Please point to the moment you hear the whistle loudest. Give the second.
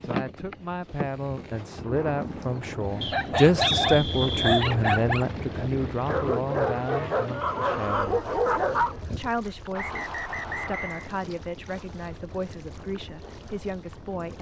4 s.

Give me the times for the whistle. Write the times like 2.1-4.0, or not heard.
3.0-4.7, 9.8-11.1.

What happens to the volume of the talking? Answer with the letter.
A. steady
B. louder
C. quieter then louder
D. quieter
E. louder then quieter
E.